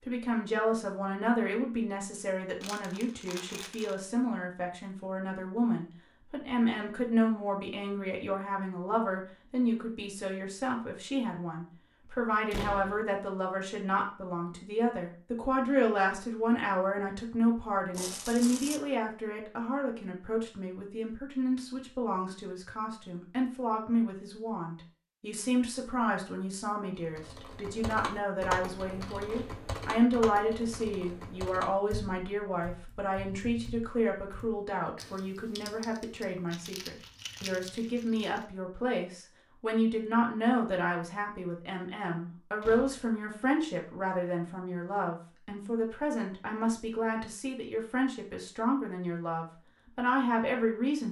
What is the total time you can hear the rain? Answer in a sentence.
You can't hear the rain here.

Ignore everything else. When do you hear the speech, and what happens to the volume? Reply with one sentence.
The speech can be heard from 0.1 to 51.0 s, at a steady volume.